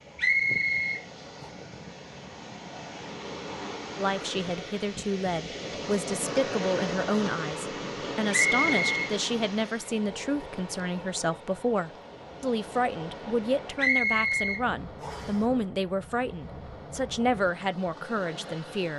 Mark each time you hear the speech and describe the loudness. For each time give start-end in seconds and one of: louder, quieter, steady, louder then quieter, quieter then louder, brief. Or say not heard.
4.0-18.9 steady.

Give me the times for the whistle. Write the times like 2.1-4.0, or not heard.
0.1-1.0, 8.3-9.1, 13.8-15.3.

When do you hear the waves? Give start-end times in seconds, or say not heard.
0.0-18.9.